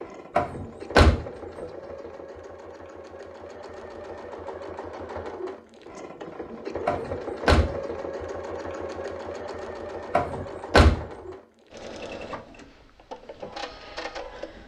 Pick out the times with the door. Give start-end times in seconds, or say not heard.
0.3-1.6, 6.8-7.8, 10.1-11.1.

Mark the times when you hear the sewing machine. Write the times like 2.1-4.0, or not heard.
0.0-14.6.